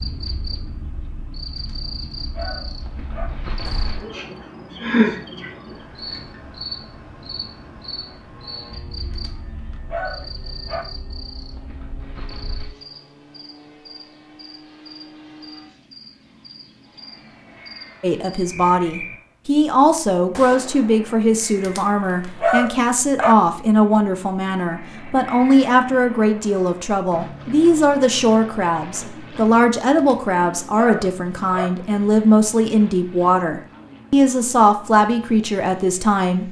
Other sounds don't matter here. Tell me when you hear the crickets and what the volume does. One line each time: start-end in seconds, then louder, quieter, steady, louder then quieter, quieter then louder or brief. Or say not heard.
0.0-19.2 louder then quieter.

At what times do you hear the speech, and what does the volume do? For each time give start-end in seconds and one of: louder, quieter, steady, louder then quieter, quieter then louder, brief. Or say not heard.
18.0-36.4 steady.